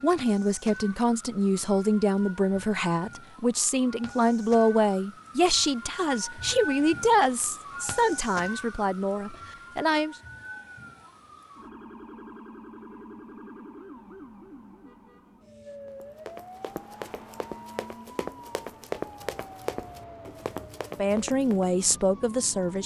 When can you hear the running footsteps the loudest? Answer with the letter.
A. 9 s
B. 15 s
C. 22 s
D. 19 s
D.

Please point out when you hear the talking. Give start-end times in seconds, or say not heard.
0.0-10.2, 20.9-22.8.